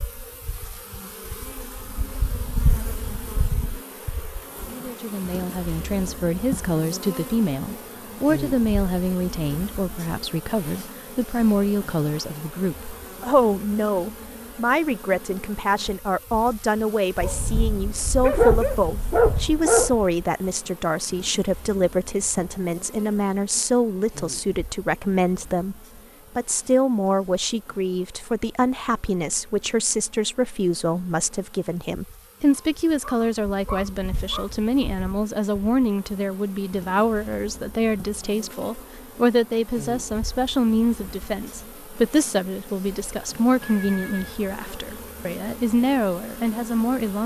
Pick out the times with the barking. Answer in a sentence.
The barking can be heard from 17.2 to 19.9 s and from 32.5 to 34.5 s.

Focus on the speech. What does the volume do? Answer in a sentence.
The volume of the speech stays about the same.